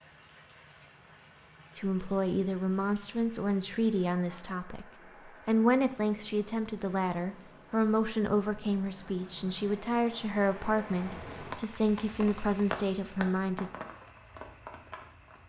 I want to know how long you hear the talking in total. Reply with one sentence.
You can hear the talking for 11 seconds altogether.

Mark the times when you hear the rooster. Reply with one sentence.
The rooster can't be heard in this clip.